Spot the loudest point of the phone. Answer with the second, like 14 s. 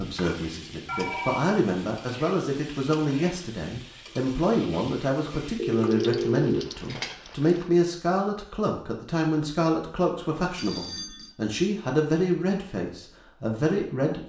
6 s.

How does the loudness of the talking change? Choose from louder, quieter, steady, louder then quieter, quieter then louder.
steady.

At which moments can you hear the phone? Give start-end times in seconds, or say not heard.
0.8-1.6, 5.5-6.6, 10.6-11.3.